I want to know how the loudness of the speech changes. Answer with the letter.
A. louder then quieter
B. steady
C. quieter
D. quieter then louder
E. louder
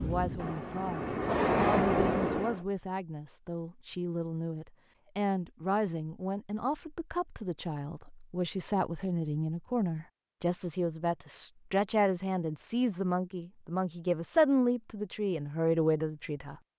E.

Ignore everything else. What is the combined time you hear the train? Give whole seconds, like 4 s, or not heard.
3 s.